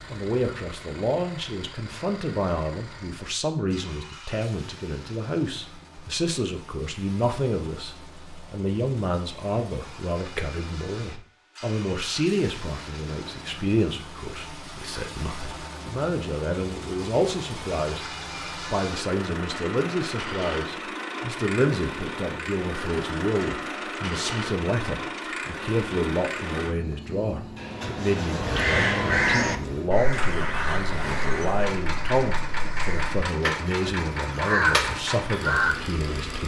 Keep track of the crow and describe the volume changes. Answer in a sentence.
The loudness of the crow goes down, then up.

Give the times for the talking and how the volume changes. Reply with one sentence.
The talking can be heard from 0.1 to 36.4 s, at a steady volume.